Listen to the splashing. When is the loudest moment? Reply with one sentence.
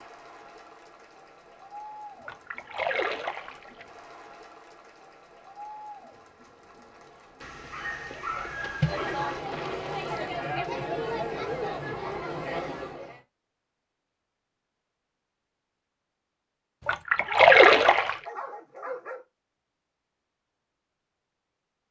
The loudest moment of the splashing is at 18 seconds.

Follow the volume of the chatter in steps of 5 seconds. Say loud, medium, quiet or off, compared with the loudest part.
quiet, medium, loud, off, off.